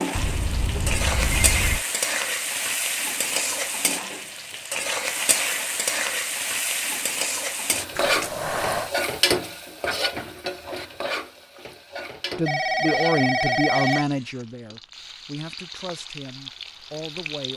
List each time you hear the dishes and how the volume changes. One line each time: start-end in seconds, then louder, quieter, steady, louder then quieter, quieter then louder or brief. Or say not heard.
not heard.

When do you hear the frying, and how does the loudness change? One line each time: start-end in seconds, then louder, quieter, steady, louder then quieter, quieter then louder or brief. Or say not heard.
0.0-17.5 quieter.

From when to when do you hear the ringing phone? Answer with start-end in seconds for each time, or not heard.
0.1-1.9, 8.0-8.9, 12.4-14.1.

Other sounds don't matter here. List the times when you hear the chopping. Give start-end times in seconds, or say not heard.
not heard.